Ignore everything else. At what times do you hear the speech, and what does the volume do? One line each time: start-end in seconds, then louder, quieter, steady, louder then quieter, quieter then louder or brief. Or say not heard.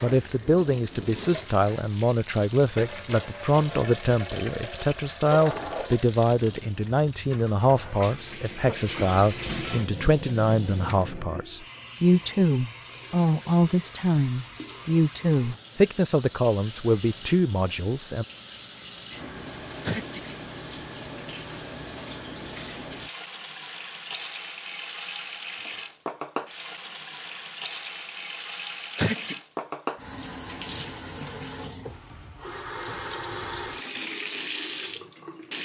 0.0-18.2 steady.